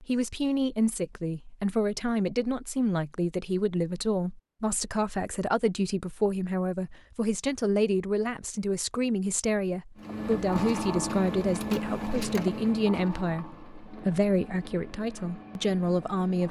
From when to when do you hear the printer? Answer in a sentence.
You can hear the printer from 9.9 to 16.4 s.